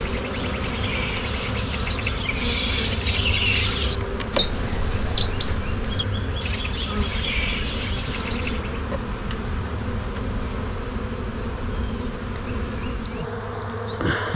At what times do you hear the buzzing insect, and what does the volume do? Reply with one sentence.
You can hear the buzzing insect from 0.0 to 14.3 s, at a steady volume.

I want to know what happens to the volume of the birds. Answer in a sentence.
The loudness of the birds goes up, then down.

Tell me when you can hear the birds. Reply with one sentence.
The birds can be heard from 0.2 to 8.7 s.